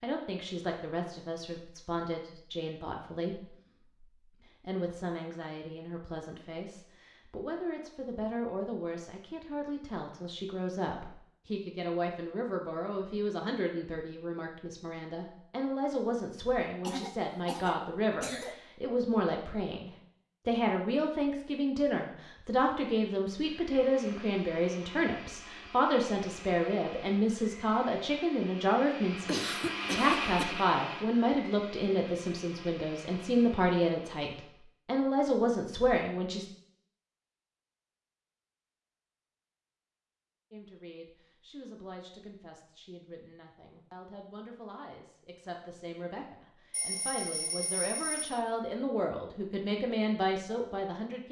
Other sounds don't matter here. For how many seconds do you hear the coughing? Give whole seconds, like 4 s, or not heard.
3 s.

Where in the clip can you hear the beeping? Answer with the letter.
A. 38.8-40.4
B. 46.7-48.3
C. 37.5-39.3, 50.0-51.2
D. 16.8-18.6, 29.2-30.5
B.